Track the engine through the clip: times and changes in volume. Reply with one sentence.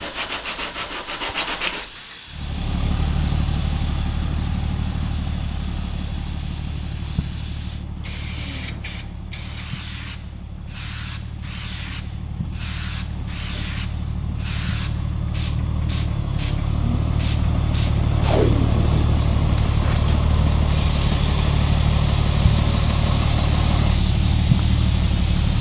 You can hear the engine from 2.2 to 25.5 s, getting quieter then louder.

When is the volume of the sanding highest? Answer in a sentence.
The volume of the sanding peaks at 2 seconds.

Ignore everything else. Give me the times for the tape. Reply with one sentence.
You can hear the tape from 18.2 to 19.1 s.